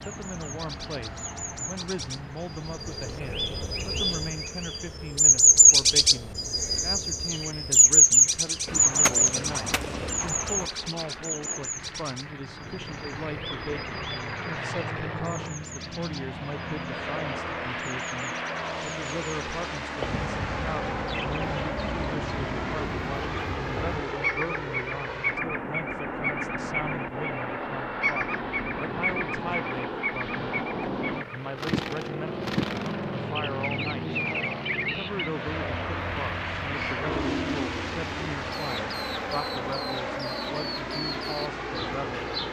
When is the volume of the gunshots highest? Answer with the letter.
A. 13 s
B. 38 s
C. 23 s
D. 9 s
D.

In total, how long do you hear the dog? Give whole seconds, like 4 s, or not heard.
not heard.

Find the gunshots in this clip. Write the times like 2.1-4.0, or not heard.
8.7-10.7.